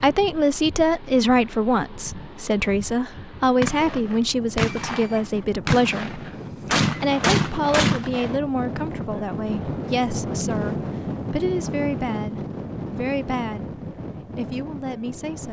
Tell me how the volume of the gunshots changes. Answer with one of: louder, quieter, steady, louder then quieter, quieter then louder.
quieter then louder.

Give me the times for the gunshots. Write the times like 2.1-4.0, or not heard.
3.6-8.3.